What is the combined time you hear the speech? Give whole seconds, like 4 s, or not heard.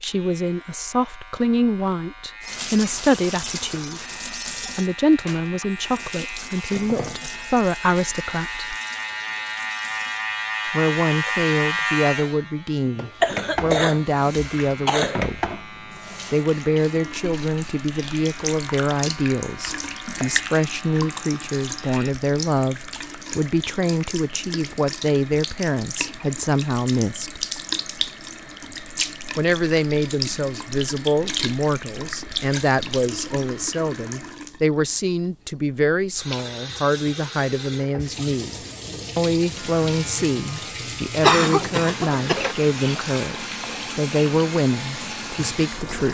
41 s.